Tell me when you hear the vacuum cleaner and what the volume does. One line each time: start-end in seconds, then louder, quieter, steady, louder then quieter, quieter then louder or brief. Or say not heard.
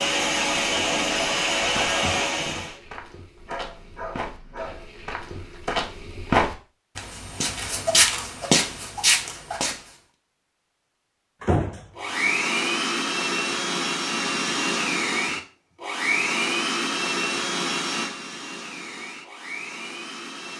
0.0-2.8 brief
11.9-20.5 quieter.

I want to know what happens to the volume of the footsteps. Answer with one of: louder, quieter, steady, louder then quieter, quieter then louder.
louder.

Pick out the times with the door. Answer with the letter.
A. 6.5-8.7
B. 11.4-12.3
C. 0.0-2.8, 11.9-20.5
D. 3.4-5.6
B.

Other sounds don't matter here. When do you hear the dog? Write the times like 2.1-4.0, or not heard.
3.4-5.6.